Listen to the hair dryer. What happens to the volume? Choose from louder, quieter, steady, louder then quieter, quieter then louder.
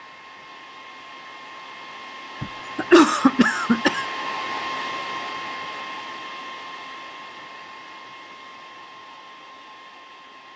louder then quieter.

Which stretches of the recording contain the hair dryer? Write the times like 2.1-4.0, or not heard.
0.0-10.5.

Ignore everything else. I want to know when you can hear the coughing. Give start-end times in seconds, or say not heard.
2.4-4.0.